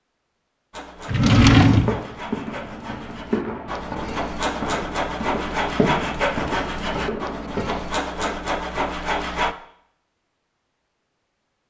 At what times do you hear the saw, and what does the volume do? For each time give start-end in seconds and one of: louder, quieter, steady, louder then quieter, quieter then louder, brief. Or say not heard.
0.7-9.6 louder.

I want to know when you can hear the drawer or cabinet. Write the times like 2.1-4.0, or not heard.
1.1-2.0.